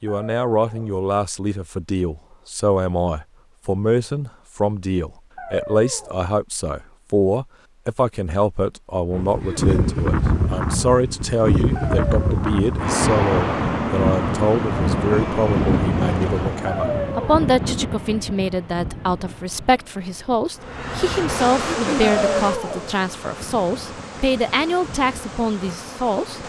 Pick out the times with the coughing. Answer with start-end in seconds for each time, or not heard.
9.4-9.9, 21.6-22.1.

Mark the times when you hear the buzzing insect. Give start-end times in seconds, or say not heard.
20.6-26.4.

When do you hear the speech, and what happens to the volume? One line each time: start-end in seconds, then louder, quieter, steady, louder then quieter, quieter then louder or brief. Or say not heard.
0.0-26.4 steady.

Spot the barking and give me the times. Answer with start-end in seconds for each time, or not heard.
0.1-1.0, 5.3-6.3, 11.8-12.7, 16.6-17.4, 22.1-22.9.